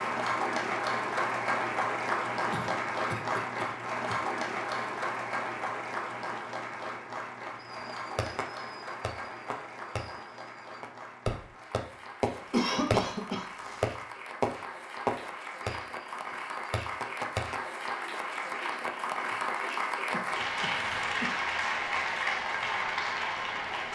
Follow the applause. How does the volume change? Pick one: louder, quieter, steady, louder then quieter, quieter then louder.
quieter then louder.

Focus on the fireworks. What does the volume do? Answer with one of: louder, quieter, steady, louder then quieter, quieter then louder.
louder then quieter.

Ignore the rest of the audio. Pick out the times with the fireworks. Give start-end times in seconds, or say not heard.
7.6-17.6.